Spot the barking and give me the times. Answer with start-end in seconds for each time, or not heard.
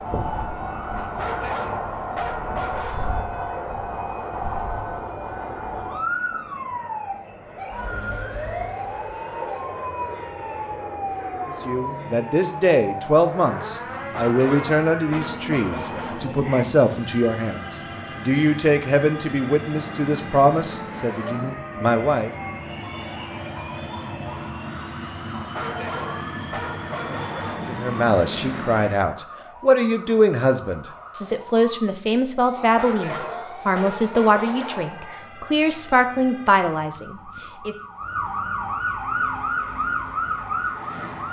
1.0-3.1, 13.9-16.8, 25.3-27.8, 32.5-35.2.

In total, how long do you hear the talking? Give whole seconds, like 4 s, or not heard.
21 s.